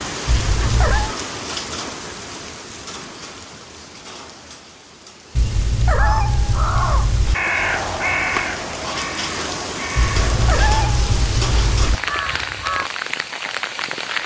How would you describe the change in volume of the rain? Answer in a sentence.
The volume of the rain goes down, then up.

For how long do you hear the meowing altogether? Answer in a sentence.
You can hear the meowing for 5 seconds altogether.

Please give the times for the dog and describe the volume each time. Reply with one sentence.
You can't hear the dog here.